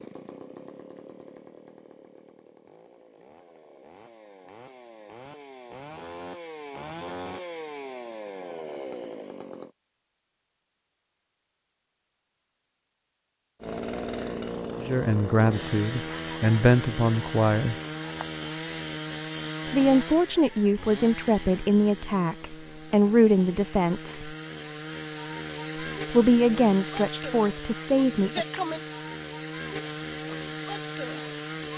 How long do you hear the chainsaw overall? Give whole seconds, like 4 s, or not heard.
28 s.